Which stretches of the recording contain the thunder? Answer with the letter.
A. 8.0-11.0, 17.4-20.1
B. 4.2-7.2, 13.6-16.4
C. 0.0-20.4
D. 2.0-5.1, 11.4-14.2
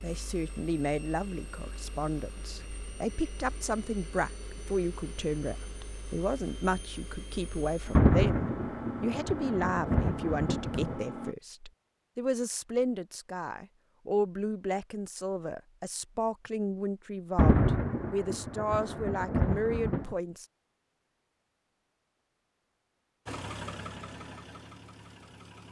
A.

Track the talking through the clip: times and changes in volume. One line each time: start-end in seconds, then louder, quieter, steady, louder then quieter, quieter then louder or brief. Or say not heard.
0.0-20.4 steady.